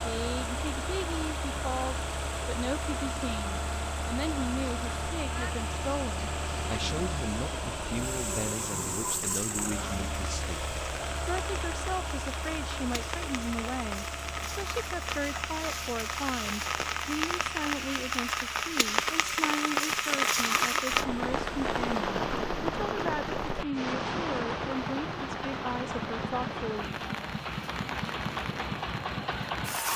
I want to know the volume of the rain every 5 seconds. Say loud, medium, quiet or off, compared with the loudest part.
quiet, quiet, medium, loud, loud, medium.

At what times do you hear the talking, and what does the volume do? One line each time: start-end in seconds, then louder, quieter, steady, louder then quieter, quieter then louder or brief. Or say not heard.
0.1-26.9 steady.